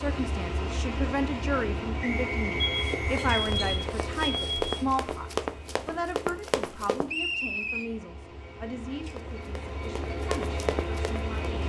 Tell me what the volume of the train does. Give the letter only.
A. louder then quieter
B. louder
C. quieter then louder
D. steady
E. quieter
C.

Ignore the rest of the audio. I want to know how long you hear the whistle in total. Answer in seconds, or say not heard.
2 s.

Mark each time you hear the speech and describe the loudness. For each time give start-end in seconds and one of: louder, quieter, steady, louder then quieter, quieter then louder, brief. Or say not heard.
0.0-11.6 quieter.